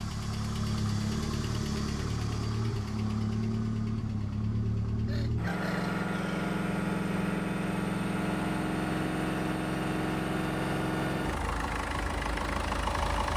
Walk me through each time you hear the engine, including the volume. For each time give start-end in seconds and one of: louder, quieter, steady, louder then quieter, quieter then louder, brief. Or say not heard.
0.0-13.3 steady.